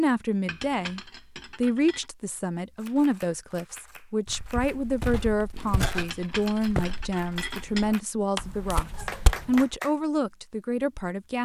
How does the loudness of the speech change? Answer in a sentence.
The loudness of the speech stays about the same.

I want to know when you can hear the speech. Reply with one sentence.
The speech can be heard from 0.0 to 11.3 s.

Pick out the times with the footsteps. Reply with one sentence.
You can hear the footsteps from 4.2 to 9.8 s.